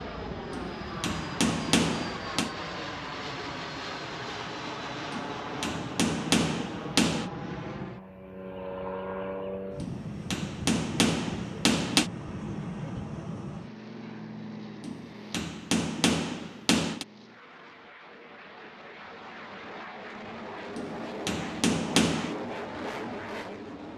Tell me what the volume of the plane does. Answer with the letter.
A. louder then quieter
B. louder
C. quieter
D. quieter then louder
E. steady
D.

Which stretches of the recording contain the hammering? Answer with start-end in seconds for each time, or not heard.
0.5-2.5, 5.1-7.3, 9.8-12.1, 14.8-17.1, 20.8-22.4.